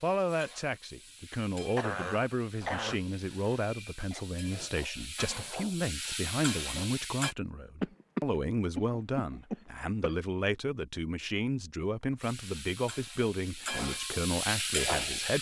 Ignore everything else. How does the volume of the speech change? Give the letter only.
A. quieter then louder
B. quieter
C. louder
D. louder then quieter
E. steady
E.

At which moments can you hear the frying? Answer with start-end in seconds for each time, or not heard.
0.0-7.3, 12.2-15.3.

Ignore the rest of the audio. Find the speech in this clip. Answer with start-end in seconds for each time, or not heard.
0.0-15.3.